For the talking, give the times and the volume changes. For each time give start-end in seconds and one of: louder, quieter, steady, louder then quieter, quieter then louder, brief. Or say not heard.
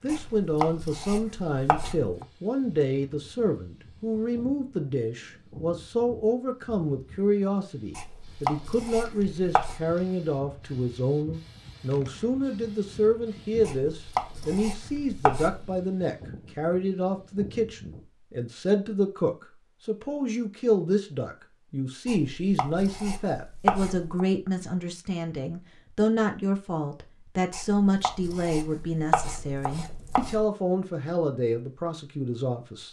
0.0-32.8 steady.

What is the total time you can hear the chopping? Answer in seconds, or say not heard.
11 s.